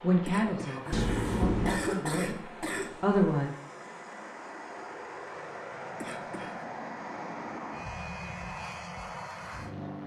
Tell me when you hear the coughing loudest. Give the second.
2 s.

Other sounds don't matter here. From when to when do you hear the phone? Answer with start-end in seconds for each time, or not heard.
0.9-1.8.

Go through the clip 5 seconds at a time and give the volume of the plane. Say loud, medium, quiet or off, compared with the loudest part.
medium, loud.